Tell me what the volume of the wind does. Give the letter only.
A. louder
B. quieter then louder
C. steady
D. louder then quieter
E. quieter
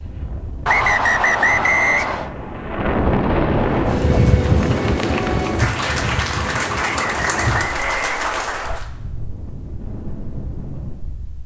D.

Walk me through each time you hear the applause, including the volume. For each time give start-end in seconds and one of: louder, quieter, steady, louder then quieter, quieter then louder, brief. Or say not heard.
3.5-8.9 louder.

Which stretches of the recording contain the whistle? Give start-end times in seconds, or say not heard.
0.7-2.3, 6.8-8.8.